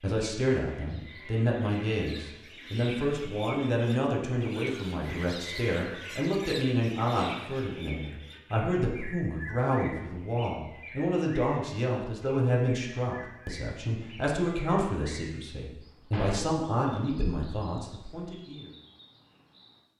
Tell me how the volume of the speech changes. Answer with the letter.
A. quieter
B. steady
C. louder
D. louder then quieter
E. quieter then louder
B.